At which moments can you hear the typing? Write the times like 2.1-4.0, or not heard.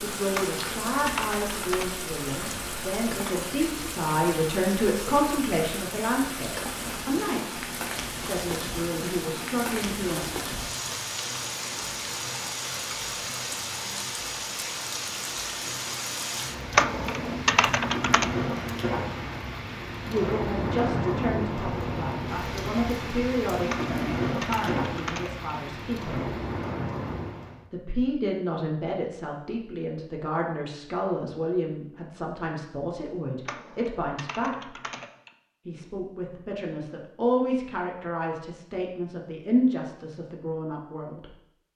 0.3-1.9, 16.8-18.3, 23.6-25.4, 33.5-35.3.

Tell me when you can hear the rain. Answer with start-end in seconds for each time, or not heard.
0.0-27.6.